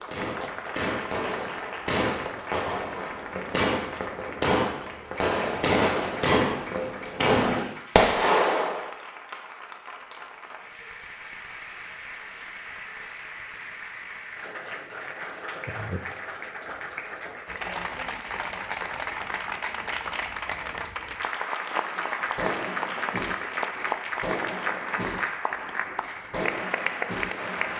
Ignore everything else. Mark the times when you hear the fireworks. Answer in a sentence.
The fireworks can be heard from 0.0 to 8.9 s and from 21.9 to 27.7 s.